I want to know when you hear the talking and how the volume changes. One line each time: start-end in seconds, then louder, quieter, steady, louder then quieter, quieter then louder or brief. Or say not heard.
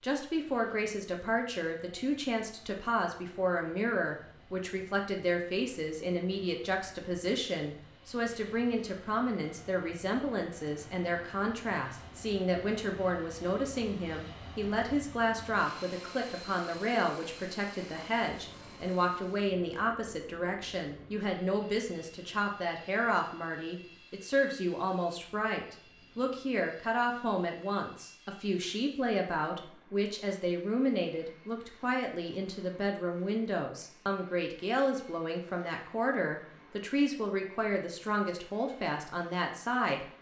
0.0-40.0 steady.